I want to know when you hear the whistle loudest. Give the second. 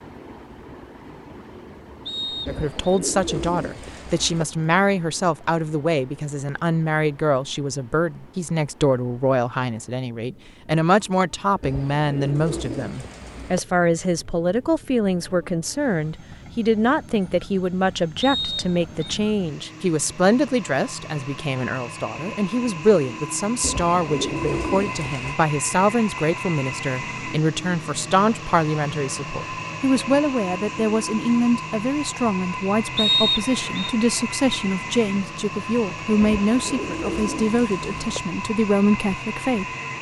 33 s.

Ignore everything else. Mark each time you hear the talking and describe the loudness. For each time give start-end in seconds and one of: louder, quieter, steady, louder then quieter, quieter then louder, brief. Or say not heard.
2.5-39.6 steady.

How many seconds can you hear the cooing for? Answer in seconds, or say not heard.
8 s.